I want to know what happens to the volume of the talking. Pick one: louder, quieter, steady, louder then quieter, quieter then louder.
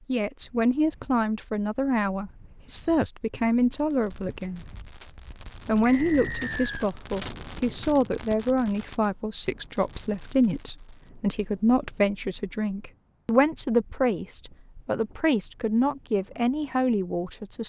steady.